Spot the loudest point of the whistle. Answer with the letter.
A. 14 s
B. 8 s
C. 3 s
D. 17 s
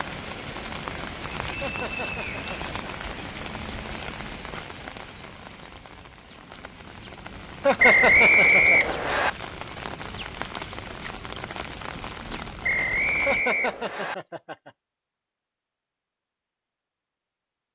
B.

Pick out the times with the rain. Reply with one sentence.
You can hear the rain from 0.0 to 13.4 s.